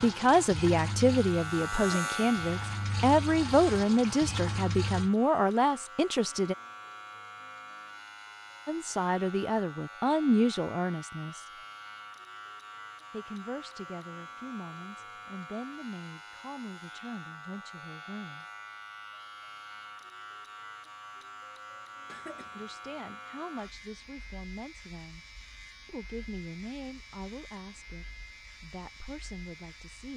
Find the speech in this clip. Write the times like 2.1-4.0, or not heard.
0.0-6.5, 8.7-11.4, 13.1-18.4, 22.6-25.2, 25.9-30.1.